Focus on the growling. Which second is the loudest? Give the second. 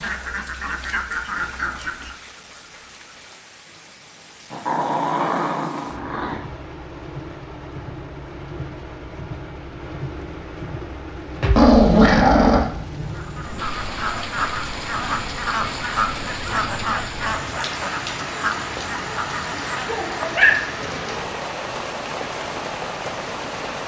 12 s.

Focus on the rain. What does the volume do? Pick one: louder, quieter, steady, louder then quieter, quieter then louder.
louder.